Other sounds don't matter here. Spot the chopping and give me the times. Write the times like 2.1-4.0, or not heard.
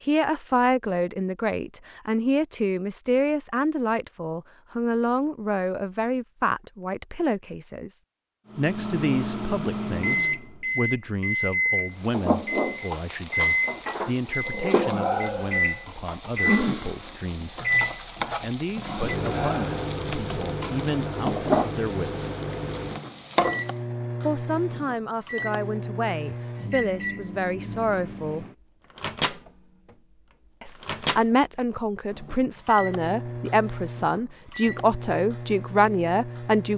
not heard.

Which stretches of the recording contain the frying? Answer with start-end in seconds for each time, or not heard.
11.9-23.8.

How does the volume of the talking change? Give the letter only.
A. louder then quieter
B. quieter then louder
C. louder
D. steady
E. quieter
B.